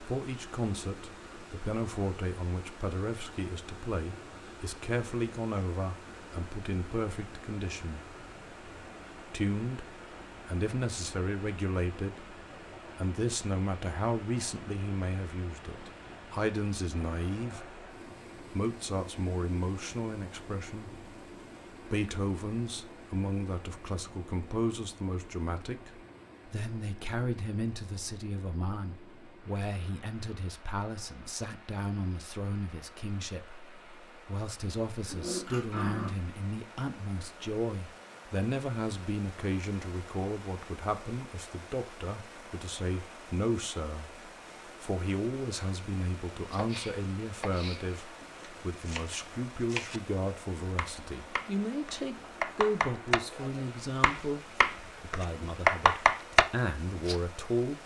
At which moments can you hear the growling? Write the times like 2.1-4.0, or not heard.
35.1-36.1.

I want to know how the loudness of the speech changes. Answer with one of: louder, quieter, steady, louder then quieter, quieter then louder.
steady.